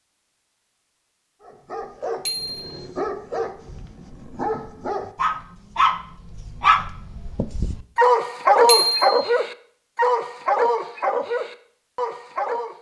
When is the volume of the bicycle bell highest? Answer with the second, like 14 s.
9 s.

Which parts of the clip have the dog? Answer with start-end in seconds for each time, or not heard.
1.4-12.7.